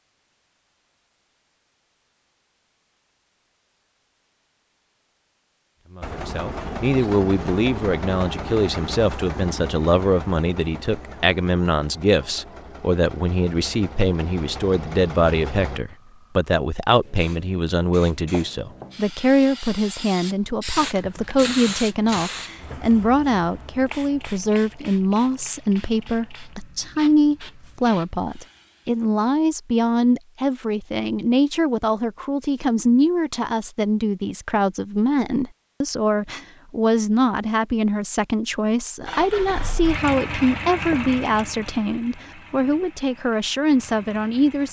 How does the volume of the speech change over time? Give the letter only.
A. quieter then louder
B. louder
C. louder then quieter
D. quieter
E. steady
E.